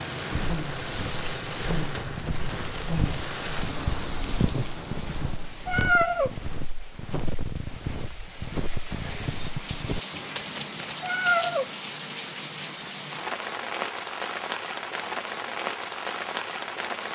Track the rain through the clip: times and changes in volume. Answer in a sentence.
You can hear the rain from 0.0 to 17.0 s, getting quieter then louder.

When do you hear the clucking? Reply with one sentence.
You can't hear the clucking here.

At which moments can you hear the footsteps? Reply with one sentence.
You can hear the footsteps from 0.3 to 11.6 s.